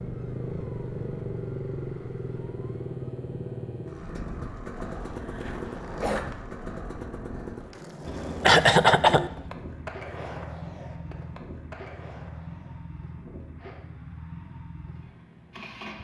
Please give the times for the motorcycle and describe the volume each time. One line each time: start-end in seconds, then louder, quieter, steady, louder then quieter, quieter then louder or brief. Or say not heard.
0.0-15.9 quieter.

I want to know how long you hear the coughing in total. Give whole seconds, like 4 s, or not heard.
2 s.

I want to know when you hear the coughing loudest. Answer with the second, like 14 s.
9 s.